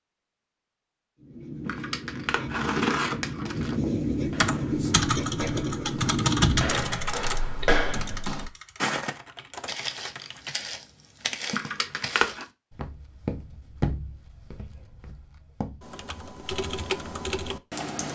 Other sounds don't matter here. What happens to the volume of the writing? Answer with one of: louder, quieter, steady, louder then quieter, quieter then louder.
louder.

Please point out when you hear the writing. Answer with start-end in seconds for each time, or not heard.
1.2-7.0.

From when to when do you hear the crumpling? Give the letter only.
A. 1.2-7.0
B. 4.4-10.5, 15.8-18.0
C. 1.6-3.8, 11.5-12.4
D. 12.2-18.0
C.